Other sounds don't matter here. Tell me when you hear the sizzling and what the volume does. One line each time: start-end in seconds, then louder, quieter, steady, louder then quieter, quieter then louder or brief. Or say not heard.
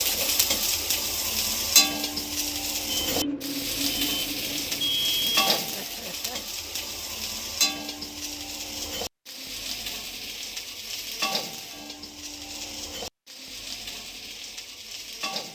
0.0-15.5 quieter.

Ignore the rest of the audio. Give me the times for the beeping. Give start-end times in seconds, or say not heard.
2.9-5.5.